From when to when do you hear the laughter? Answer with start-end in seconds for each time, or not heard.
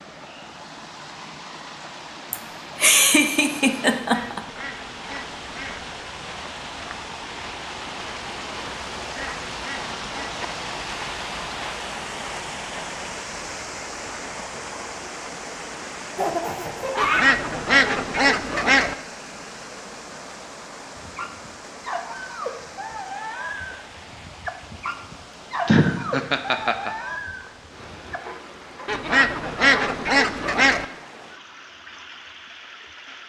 2.3-4.4, 16.1-17.3, 25.6-26.9.